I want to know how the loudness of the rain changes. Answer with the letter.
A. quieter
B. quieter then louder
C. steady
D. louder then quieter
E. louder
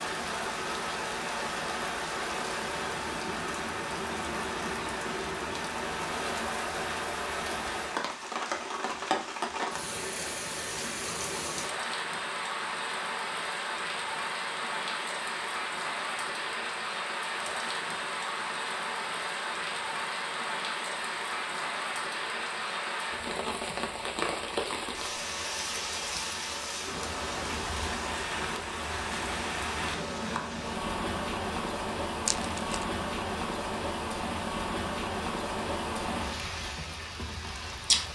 C.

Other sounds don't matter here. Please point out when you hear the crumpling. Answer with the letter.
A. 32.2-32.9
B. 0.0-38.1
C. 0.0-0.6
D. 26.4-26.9
A.